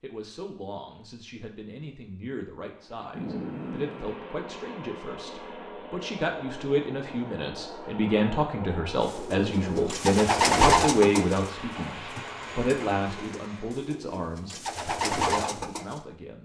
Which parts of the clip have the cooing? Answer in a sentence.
The cooing can be heard from 9.1 to 16.0 s.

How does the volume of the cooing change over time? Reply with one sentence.
The volume of the cooing goes down, then up.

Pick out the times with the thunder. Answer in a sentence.
You can hear the thunder from 3.1 to 4.2 s.